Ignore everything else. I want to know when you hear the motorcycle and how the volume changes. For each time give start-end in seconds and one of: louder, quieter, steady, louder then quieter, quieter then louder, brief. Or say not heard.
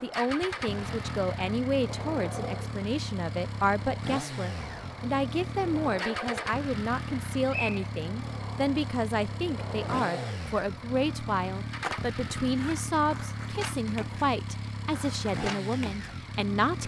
0.0-16.8 steady.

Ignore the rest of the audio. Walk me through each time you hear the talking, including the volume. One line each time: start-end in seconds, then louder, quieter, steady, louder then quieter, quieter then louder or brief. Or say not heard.
0.0-16.8 steady.